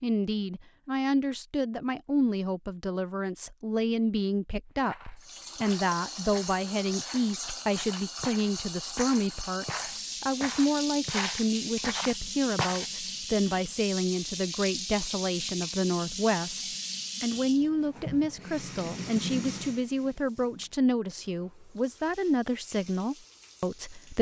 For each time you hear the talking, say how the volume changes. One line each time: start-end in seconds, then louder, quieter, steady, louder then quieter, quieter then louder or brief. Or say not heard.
0.0-24.1 steady.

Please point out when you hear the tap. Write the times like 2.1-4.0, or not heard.
5.2-24.1.